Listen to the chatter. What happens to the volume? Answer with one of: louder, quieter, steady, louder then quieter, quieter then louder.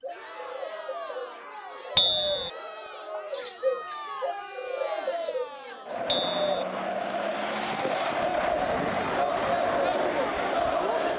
louder.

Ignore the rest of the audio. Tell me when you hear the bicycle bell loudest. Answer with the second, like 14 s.
2 s.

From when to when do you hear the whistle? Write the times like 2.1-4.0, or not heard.
not heard.